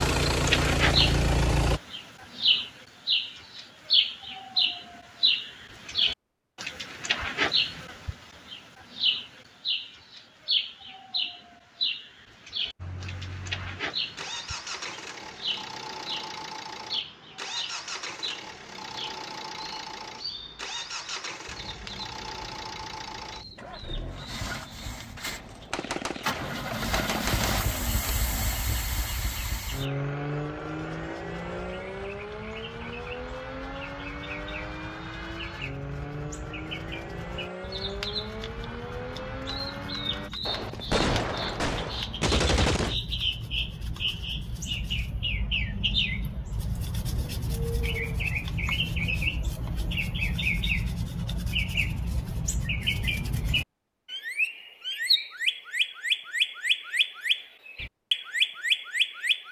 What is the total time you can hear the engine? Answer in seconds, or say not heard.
29 s.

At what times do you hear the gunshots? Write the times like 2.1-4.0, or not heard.
25.2-27.9, 40.5-43.0.